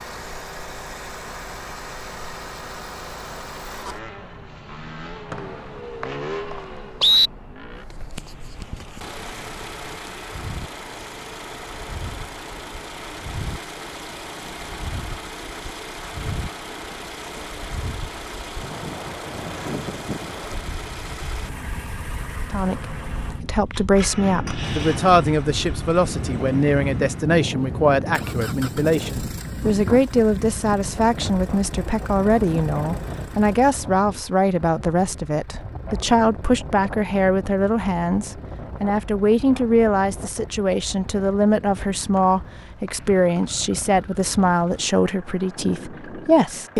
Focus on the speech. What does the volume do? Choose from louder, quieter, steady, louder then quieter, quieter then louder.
steady.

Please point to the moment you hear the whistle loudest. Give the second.
7 s.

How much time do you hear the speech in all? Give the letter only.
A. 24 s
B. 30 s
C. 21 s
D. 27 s
A.